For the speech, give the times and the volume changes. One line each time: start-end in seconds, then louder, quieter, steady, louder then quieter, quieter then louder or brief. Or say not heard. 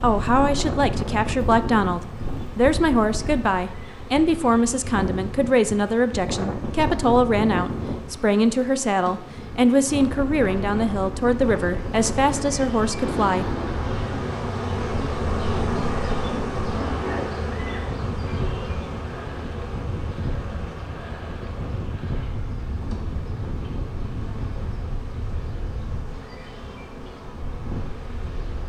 0.0-13.4 steady.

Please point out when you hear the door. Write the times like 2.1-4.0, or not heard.
not heard.